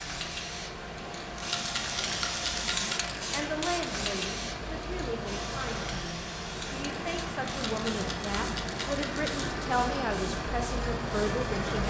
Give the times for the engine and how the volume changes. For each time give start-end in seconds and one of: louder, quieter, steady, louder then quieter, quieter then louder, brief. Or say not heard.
0.0-11.8 louder.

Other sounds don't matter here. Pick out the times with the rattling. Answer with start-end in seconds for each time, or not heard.
1.4-3.0, 7.7-9.5.